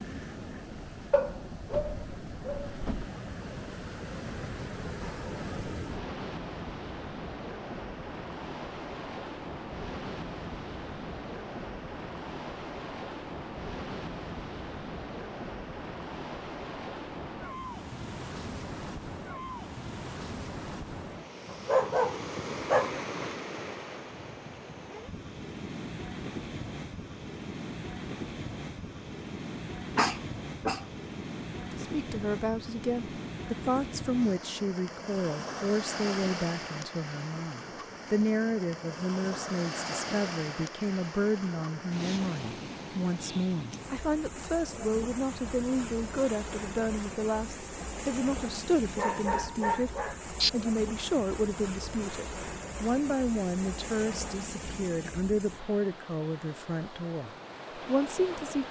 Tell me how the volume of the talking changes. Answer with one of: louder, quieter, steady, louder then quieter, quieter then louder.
steady.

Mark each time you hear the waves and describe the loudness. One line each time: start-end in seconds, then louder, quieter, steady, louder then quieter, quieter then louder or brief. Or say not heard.
0.0-58.6 steady.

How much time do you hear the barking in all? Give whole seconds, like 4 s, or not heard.
6 s.